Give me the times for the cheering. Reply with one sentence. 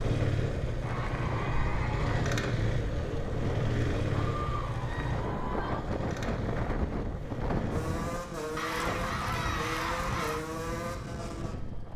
You can hear the cheering from 0.8 to 2.4 s, from 4.2 to 5.8 s and from 8.6 to 10.4 s.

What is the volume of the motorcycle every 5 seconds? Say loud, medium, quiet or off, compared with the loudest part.
loud, medium, medium.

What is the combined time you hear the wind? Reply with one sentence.
The wind can be heard for 12 seconds in total.